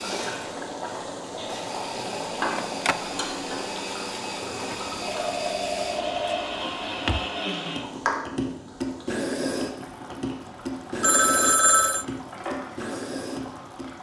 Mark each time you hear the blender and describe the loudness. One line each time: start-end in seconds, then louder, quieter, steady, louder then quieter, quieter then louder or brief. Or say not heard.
0.0-13.9 louder.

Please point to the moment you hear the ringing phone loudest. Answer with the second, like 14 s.
12 s.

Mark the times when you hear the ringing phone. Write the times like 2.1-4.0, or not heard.
2.5-3.0, 4.7-7.2, 11.0-12.1.